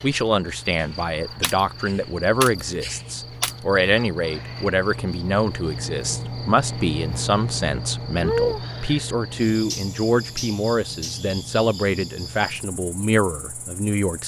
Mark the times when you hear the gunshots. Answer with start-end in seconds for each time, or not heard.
0.8-3.5.